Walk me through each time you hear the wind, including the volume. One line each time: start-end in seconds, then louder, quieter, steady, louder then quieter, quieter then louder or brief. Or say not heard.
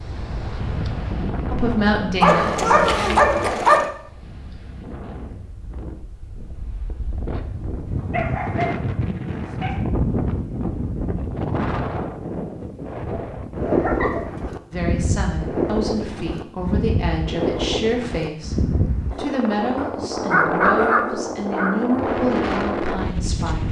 0.0-23.6 louder.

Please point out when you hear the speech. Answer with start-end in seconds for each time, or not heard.
1.5-3.2, 14.7-23.6.